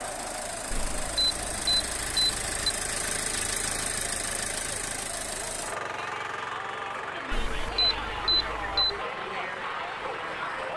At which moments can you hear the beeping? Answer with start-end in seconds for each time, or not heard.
0.7-2.5, 7.3-9.0.